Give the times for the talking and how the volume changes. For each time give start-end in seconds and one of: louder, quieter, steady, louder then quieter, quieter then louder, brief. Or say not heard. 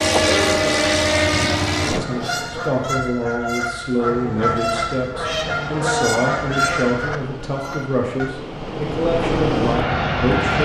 1.9-10.6 steady.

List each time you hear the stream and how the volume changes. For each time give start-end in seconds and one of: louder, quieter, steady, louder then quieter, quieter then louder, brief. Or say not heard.
not heard.